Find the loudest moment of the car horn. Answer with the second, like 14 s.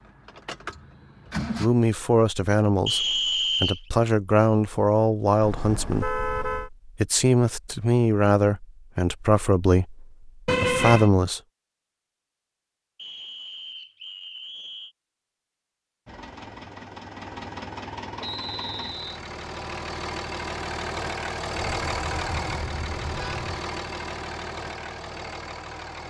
11 s.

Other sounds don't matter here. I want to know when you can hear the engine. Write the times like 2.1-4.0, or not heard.
0.0-1.7, 16.1-26.0.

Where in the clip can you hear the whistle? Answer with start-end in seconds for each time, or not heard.
2.9-3.8, 12.9-14.9, 18.2-19.2.